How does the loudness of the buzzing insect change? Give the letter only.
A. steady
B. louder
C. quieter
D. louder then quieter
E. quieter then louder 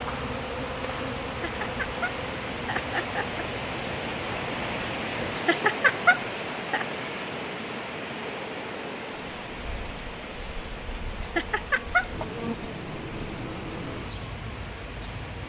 E.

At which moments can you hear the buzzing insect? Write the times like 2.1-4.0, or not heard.
0.0-15.4.